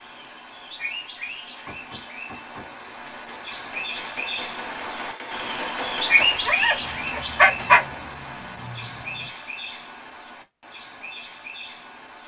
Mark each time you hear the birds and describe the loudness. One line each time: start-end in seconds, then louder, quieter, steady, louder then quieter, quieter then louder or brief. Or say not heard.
0.0-12.2 louder then quieter.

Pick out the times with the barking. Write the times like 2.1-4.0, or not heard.
6.2-7.8.